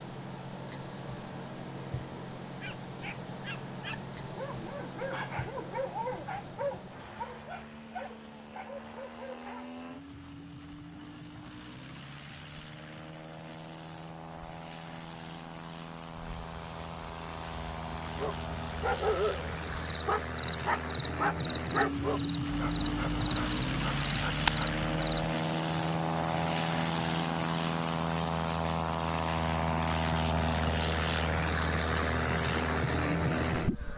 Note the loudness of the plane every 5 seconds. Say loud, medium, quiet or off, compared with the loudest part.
quiet, quiet, quiet, medium, loud, loud, loud.